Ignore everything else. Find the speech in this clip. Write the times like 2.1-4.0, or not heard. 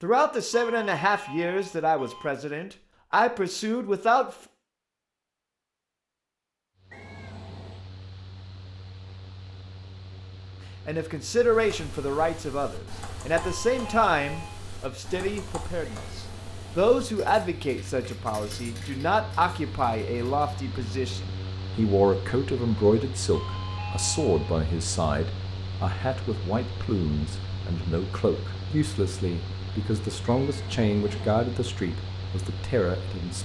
0.0-4.3, 10.8-33.4.